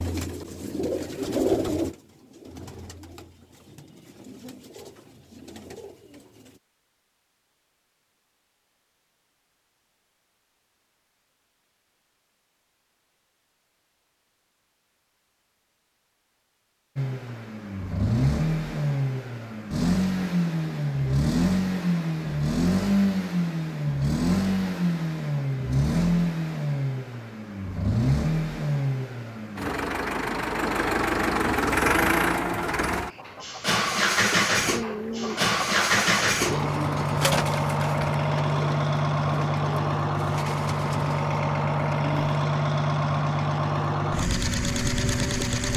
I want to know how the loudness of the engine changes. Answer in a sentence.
The volume of the engine stays about the same.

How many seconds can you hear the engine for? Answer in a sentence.
The engine can be heard for 29 seconds in total.